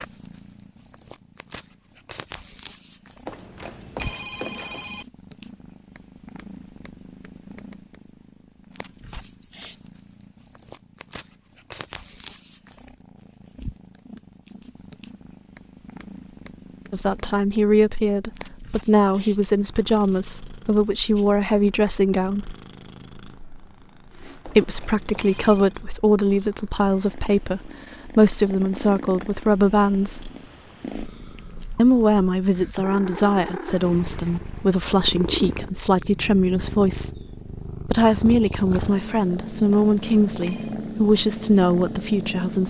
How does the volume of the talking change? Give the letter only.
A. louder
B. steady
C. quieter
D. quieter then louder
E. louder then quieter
B.